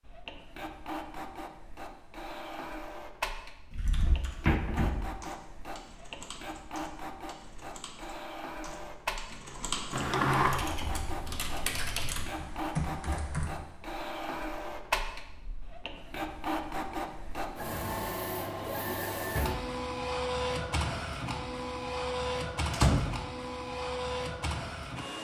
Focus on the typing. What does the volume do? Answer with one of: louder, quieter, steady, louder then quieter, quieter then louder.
louder.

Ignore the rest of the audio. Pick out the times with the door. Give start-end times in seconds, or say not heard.
3.7-5.1, 9.9-10.6, 22.7-23.2.